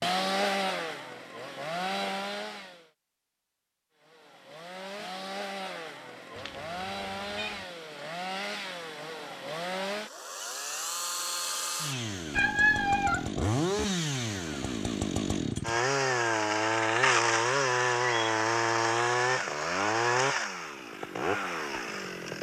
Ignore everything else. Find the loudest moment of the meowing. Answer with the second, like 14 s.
13 s.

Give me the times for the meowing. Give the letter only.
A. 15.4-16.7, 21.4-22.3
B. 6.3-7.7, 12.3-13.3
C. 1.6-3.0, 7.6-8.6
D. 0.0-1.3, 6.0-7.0
B.